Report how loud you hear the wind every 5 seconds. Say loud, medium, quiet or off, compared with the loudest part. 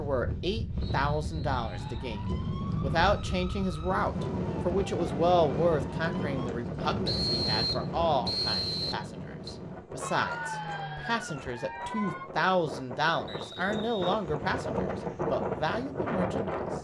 loud, loud, medium, loud.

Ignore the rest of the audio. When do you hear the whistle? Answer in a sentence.
You can hear the whistle from 0.9 to 2.0 s, from 7.0 to 9.6 s and from 13.2 to 14.0 s.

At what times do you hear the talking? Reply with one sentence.
You can hear the talking from 0.0 to 16.6 s.